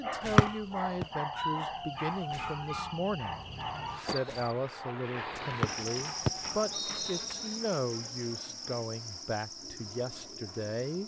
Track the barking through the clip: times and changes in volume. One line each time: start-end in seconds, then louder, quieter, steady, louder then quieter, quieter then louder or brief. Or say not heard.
0.0-6.8 quieter.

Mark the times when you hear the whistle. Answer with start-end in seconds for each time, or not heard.
0.3-1.1, 5.6-7.5.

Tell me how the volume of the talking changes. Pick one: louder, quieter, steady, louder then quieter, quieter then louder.
steady.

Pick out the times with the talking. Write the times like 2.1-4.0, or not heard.
0.0-11.0.